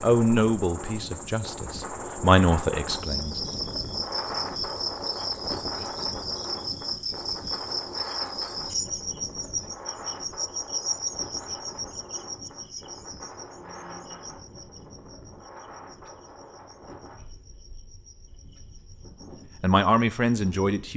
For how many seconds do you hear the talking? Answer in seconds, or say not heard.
5 s.